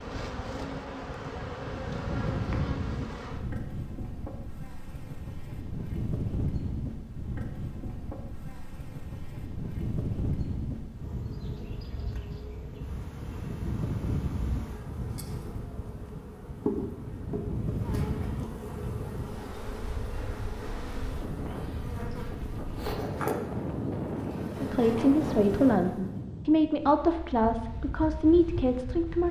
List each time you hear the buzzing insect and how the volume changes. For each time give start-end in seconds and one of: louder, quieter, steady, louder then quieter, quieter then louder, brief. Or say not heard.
0.0-26.2 quieter then louder.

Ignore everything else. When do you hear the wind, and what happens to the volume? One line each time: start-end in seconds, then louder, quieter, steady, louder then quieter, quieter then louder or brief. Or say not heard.
0.0-29.2 steady.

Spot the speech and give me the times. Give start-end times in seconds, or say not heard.
24.6-29.2.